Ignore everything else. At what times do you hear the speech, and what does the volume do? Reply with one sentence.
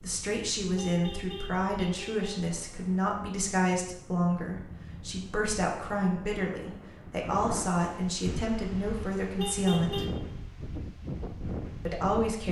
The speech can be heard from 0.0 to 10.1 s, at a steady volume; and briefly from 11.8 to 12.4 s.